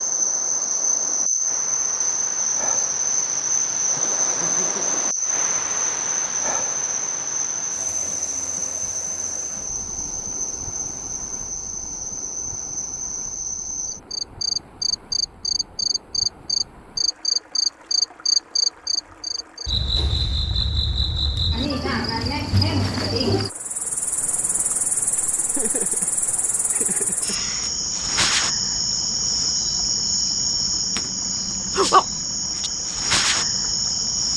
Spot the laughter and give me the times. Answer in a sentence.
The laughter can be heard from 4.0 to 5.0 s and from 25.5 to 27.4 s.